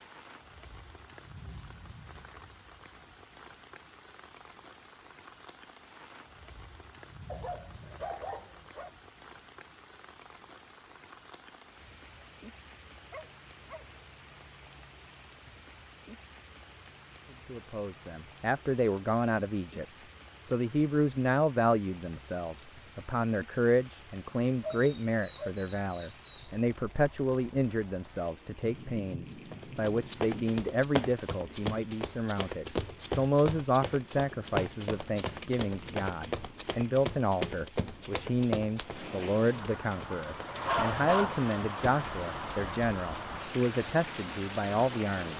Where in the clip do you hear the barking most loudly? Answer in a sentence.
The volume of the barking peaks at 41 seconds.